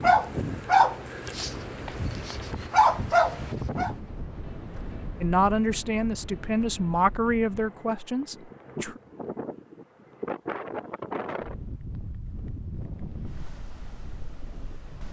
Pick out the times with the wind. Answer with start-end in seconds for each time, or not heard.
0.0-15.0.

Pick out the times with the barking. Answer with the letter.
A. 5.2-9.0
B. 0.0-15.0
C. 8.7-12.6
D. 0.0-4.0
D.